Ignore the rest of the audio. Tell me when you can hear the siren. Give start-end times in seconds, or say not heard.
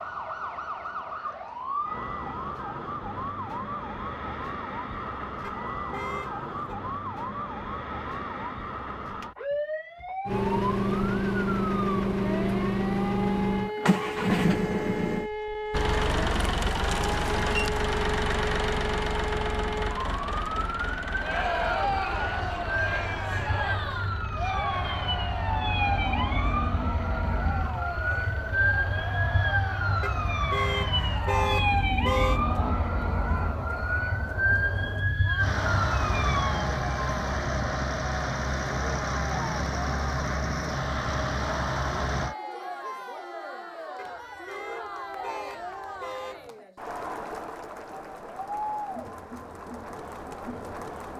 0.0-36.7.